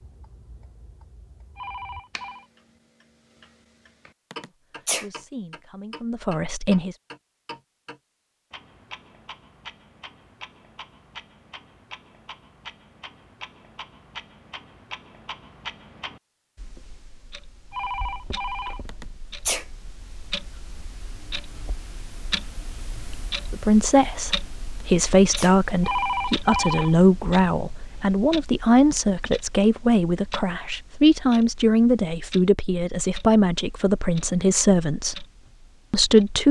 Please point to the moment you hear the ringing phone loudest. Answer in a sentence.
The volume of the ringing phone peaks at 26 seconds.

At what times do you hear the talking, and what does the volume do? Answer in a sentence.
The talking can be heard briefly from 4.8 to 7.0 s; from 23.5 to 35.2 s, at a steady volume; and briefly from 35.9 to 36.4 s.